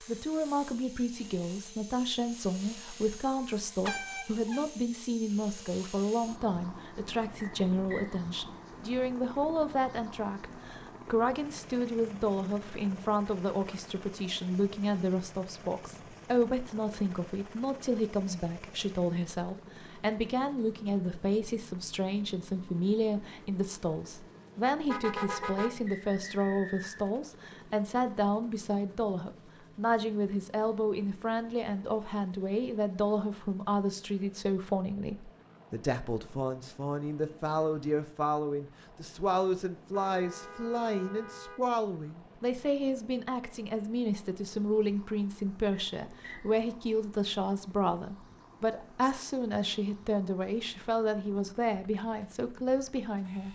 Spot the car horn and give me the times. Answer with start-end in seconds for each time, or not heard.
3.8-4.7, 24.8-25.9, 40.0-41.6.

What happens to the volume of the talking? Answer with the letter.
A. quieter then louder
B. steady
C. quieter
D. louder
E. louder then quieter
B.